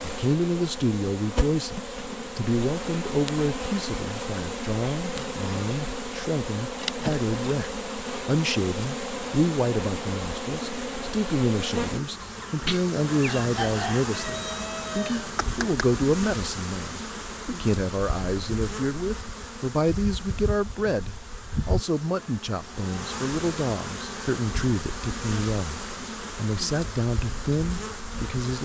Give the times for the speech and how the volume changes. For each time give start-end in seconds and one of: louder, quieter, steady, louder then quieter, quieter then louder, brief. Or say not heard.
0.0-28.5 steady.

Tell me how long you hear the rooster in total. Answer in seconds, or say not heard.
4 s.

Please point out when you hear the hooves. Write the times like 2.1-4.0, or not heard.
not heard.